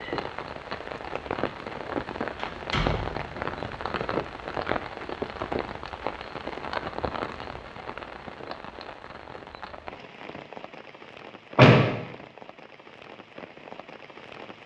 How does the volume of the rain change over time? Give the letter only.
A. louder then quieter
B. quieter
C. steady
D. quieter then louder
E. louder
B.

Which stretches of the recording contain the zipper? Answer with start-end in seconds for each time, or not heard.
not heard.